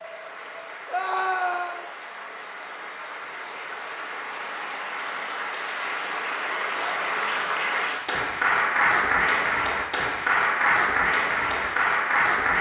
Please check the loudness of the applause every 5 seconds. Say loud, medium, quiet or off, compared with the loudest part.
quiet, loud, loud.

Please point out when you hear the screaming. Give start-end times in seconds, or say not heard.
0.8-1.9.